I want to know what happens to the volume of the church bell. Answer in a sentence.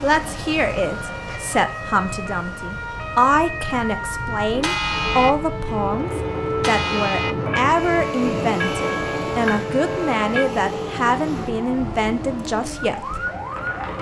The volume of the church bell stays about the same.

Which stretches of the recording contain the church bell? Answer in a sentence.
You can hear the church bell from 4.5 to 10.4 s.